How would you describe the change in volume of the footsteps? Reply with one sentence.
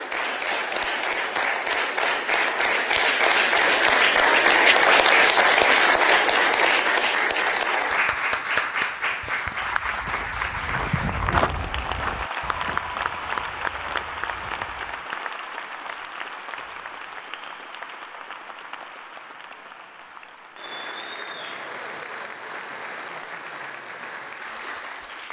The volume of the footsteps goes up, then down.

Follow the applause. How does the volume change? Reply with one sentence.
The volume of the applause goes down.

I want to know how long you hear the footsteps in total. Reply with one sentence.
You can hear the footsteps for 6 seconds altogether.